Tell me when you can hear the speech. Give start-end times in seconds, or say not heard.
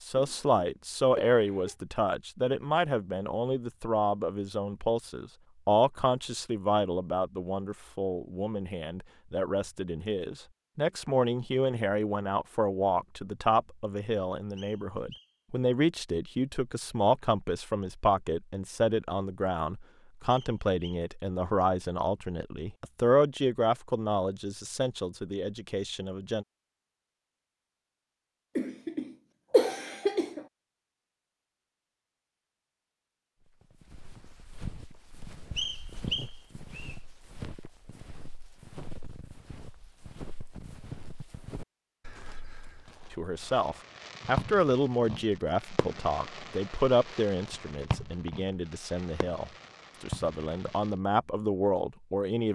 0.0-26.4, 43.1-52.5.